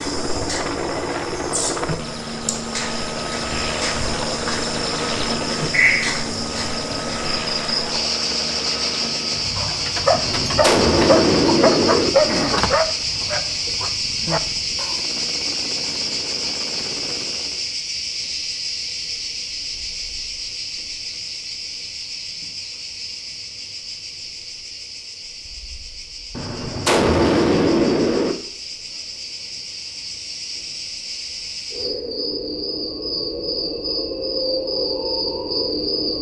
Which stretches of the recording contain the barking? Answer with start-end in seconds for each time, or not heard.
9.6-14.9.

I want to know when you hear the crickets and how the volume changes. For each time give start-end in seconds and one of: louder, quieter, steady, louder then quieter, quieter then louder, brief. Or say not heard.
0.0-36.1 quieter then louder.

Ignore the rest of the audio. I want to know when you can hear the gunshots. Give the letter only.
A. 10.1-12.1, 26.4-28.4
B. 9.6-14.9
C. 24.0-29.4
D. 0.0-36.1
A.